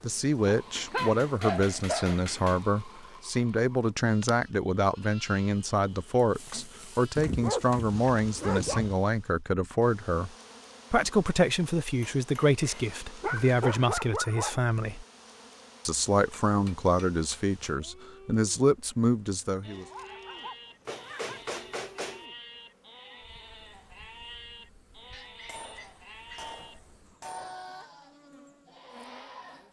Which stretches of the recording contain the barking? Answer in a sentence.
The barking can be heard from 0.5 to 2.2 s, from 7.2 to 8.9 s, from 12.6 to 14.6 s, from 19.7 to 21.4 s and from 25.1 to 26.4 s.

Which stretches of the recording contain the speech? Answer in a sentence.
The speech can be heard from 0.0 to 10.3 s, from 10.9 to 15.1 s and from 15.8 to 19.9 s.